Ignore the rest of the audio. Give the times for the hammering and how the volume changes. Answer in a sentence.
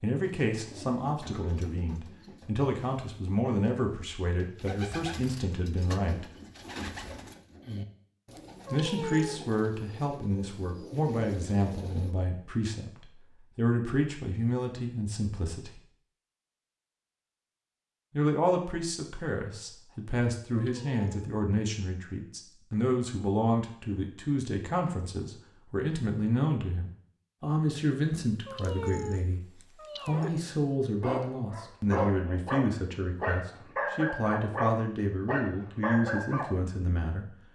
The hammering can't be heard in this clip.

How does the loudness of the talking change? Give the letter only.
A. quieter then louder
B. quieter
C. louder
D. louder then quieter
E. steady
E.